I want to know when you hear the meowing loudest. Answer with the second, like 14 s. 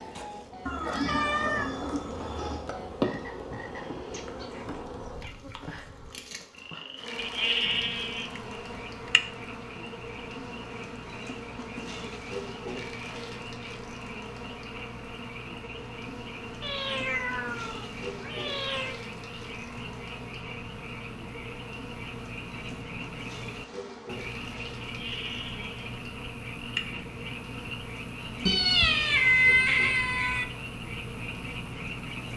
29 s.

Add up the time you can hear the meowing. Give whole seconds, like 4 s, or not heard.
6 s.